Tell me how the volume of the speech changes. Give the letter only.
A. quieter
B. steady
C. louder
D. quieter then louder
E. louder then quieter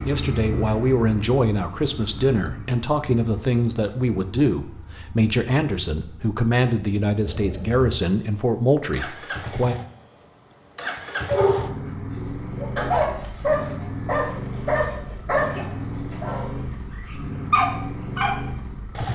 B.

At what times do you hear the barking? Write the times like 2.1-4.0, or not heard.
11.1-18.3.